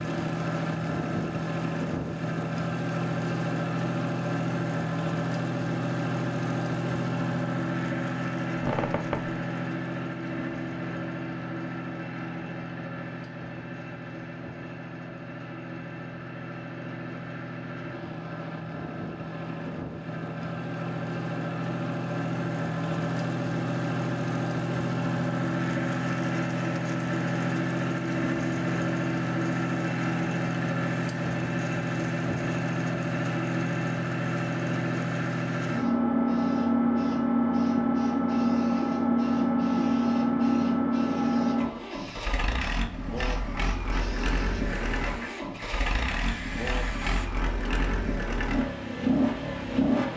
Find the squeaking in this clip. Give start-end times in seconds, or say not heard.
8.6-9.3.